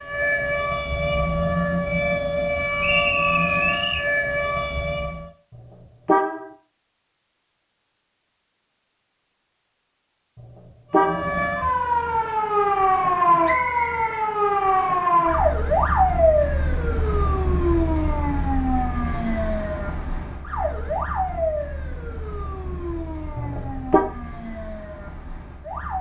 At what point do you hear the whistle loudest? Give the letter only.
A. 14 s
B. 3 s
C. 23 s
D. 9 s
B.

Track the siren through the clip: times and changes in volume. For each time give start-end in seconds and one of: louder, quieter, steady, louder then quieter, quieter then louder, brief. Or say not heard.
0.0-5.3 steady
10.9-25.9 quieter.